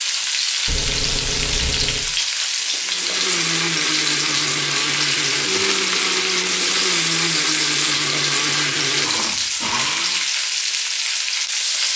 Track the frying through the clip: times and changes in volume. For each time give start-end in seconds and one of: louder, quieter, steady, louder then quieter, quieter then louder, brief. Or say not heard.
0.0-11.9 steady.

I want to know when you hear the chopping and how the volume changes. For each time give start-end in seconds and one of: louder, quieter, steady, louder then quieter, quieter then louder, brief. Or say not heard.
not heard.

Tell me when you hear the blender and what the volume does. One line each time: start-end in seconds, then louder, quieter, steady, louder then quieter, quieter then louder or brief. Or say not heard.
2.8-10.2 steady.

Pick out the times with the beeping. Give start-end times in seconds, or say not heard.
0.7-2.0.